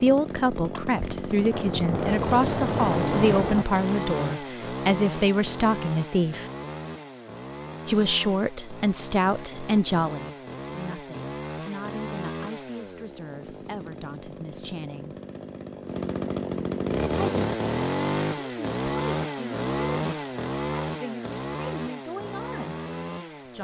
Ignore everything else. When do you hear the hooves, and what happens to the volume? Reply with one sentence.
The hooves can't be heard in this clip.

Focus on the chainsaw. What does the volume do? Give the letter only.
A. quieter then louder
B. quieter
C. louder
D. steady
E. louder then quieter
A.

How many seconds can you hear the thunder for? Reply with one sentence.
You can hear the thunder for 3 seconds altogether.